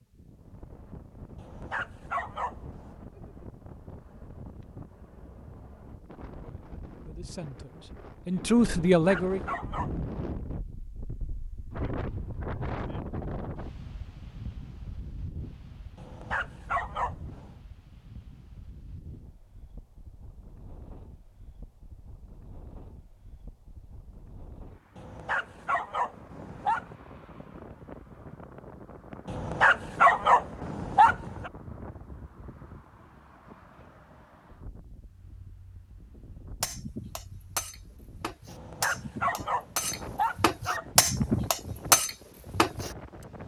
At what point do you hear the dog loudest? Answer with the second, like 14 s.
30 s.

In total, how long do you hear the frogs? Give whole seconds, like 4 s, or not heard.
not heard.